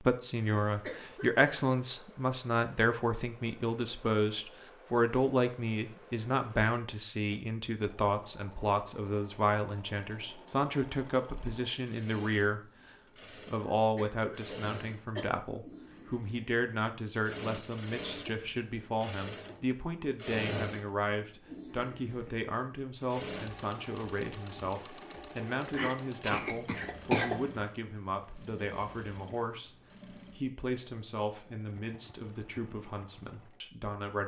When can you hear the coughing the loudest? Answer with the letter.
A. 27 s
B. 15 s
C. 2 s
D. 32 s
A.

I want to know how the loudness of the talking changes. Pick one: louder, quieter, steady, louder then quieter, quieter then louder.
quieter.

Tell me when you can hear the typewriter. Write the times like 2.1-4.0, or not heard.
not heard.